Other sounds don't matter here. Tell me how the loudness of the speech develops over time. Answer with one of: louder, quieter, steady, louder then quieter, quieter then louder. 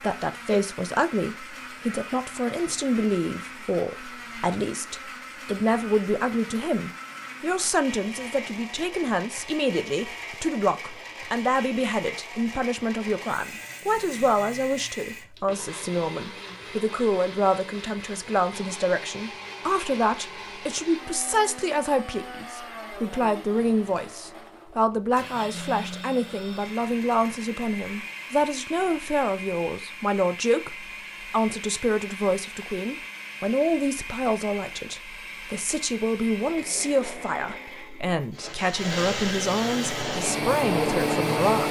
steady.